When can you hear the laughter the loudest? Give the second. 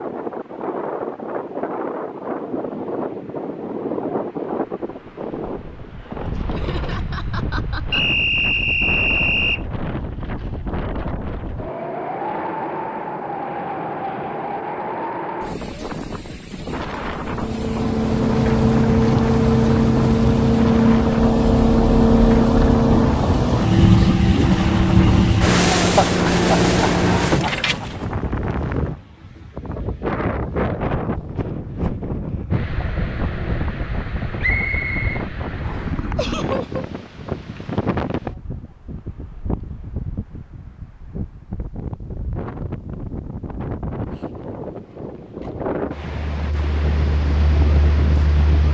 26 s.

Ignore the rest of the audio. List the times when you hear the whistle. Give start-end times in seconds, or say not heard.
7.9-9.6, 34.4-36.0.